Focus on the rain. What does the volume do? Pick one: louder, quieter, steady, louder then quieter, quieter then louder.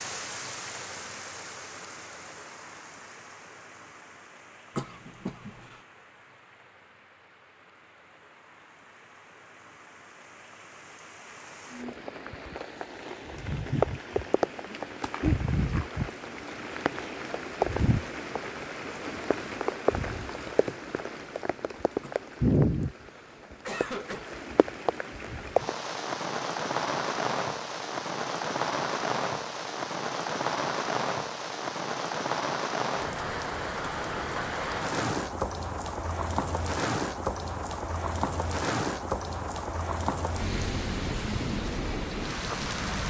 louder.